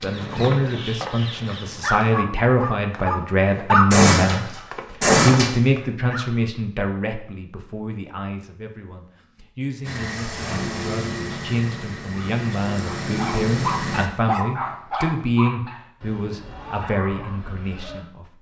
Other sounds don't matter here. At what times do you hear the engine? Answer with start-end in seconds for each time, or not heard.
9.8-14.1.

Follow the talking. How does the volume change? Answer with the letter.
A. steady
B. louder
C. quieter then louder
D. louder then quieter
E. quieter
C.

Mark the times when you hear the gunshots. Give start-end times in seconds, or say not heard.
3.9-5.5.